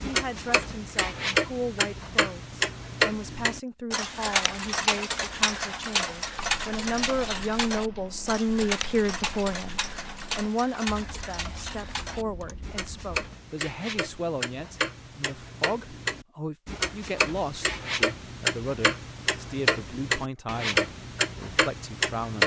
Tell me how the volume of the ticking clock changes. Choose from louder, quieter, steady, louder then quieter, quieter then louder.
quieter then louder.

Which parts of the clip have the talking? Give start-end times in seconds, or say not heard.
0.0-22.4.